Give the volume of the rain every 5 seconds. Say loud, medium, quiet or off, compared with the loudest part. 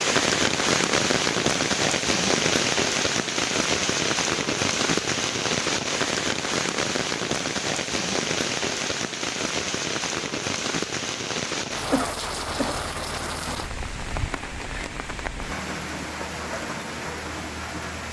loud, loud, medium, medium.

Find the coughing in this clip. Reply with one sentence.
You can hear the coughing from 11.9 to 12.9 s.